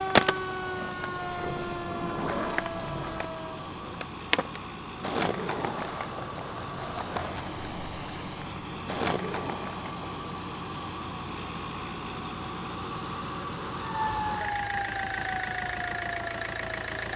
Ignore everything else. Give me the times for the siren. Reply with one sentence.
The siren can be heard from 0.0 to 3.7 s and from 13.8 to 16.9 s.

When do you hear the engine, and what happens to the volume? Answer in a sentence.
You can hear the engine from 0.0 to 17.1 s, getting louder.